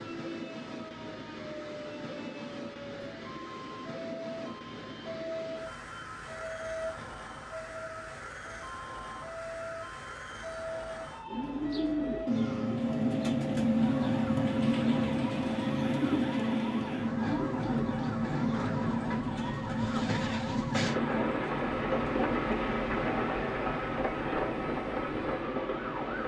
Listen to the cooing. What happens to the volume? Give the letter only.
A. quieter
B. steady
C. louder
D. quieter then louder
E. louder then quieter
A.